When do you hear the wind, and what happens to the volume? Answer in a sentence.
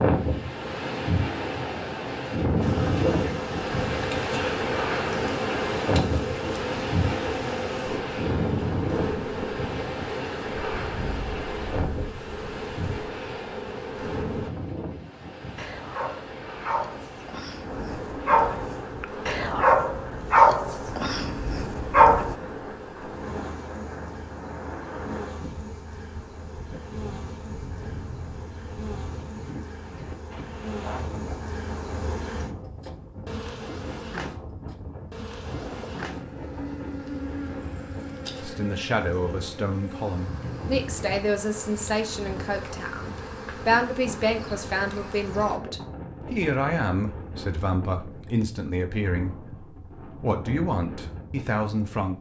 The wind can be heard from 0.0 to 52.1 s, getting quieter.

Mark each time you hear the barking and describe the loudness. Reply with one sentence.
You can hear the barking from 15.6 to 22.4 s, getting louder then quieter.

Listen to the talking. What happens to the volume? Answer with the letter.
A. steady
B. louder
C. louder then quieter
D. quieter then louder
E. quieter
A.